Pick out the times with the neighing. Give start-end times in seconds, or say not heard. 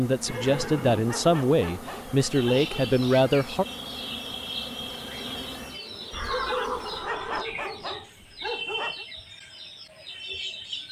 0.2-1.1, 6.1-7.5.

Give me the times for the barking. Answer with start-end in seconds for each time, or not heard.
0.3-2.8, 6.2-9.1.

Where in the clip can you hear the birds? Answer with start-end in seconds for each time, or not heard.
2.3-10.8.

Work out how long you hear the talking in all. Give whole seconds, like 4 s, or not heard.
4 s.